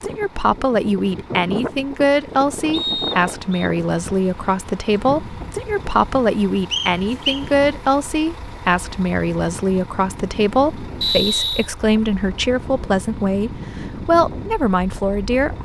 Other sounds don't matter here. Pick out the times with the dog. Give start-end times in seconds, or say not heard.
not heard.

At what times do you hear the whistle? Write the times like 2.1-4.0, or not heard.
2.7-3.7, 6.7-7.4, 11.0-11.7.